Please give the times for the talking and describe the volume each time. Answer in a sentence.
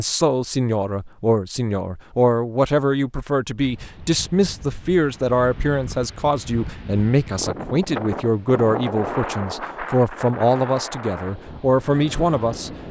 You can hear the talking from 0.0 to 12.7 s, at a steady volume.